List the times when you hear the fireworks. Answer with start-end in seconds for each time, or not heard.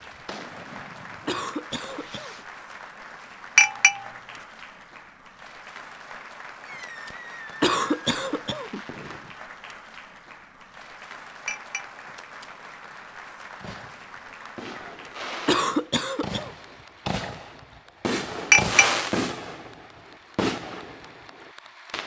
0.0-2.5, 6.6-9.4, 13.6-22.0.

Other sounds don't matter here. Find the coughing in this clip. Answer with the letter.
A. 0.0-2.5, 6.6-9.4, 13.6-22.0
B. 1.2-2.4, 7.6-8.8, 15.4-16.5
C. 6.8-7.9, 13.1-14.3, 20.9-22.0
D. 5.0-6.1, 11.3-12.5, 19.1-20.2
B.